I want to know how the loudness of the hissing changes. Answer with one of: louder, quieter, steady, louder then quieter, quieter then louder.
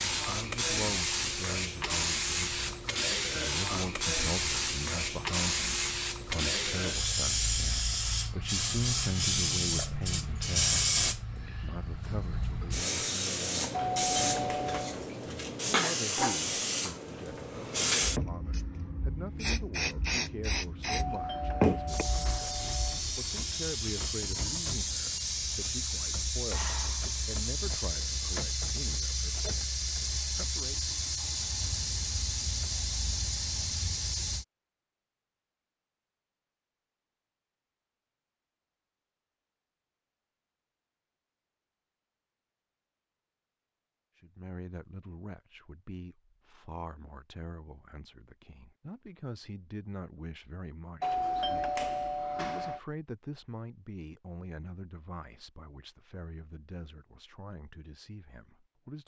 steady.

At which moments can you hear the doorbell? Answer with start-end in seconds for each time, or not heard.
13.7-14.9, 20.9-23.0, 51.0-52.8.